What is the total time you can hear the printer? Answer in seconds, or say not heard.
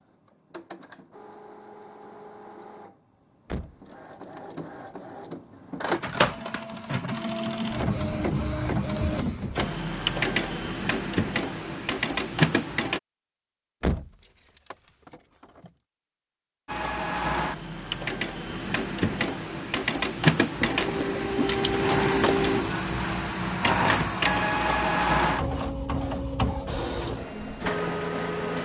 25 s.